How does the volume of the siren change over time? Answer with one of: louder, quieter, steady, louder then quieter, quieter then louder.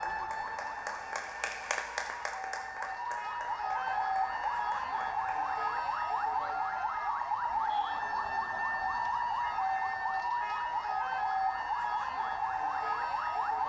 louder.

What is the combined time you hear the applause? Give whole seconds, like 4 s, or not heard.
5 s.